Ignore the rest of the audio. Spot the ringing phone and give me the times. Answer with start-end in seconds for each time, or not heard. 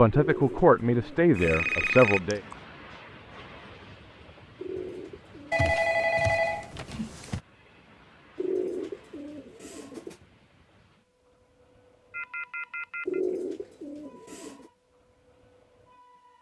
1.4-2.5, 5.5-7.4, 12.1-13.2.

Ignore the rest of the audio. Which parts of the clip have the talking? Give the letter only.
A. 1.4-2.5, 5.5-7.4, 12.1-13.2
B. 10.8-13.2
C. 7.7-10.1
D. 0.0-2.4
D.